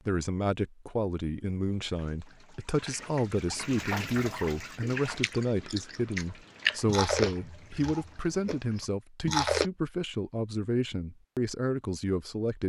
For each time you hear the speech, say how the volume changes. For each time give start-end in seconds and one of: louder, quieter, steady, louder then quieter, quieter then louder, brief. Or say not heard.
0.1-12.6 steady.